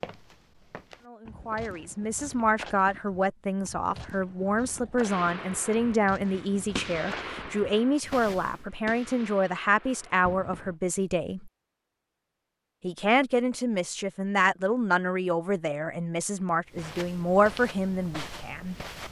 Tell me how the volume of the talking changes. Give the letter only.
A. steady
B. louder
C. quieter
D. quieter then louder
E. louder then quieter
A.